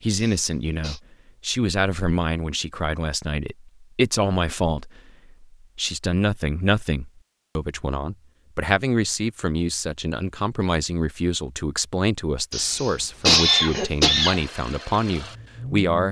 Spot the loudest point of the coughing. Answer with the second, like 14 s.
13 s.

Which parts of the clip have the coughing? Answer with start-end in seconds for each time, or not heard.
0.1-1.0, 12.5-14.4.